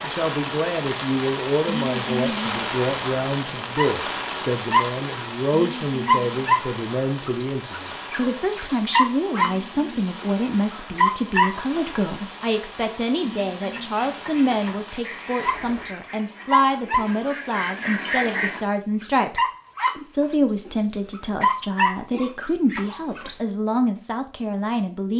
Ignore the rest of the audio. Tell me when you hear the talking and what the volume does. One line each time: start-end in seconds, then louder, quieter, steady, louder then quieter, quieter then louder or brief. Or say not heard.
0.0-25.1 steady.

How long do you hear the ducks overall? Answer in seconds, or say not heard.
5 s.